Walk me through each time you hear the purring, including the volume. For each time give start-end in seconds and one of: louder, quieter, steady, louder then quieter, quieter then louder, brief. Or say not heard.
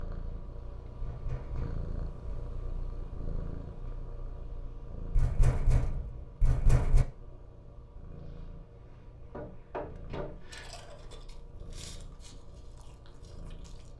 0.0-13.9 quieter.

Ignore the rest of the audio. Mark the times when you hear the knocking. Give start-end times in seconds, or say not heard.
1.0-2.4, 5.2-7.0, 9.3-10.7.